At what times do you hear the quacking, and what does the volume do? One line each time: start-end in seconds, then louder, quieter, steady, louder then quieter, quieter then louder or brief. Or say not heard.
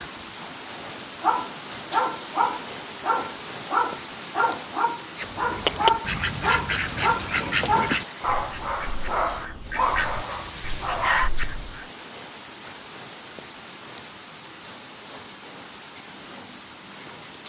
5.2-11.8 quieter.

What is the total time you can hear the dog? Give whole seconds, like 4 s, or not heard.
10 s.